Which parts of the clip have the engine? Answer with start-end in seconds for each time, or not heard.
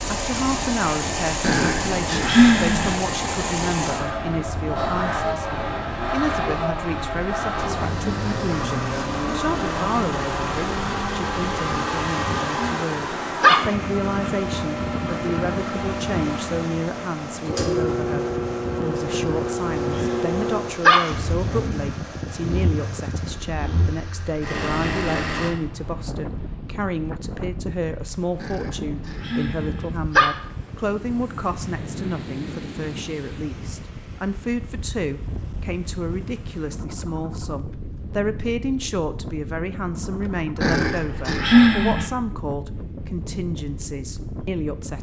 0.0-25.5.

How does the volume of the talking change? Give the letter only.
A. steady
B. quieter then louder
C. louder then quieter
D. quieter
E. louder
A.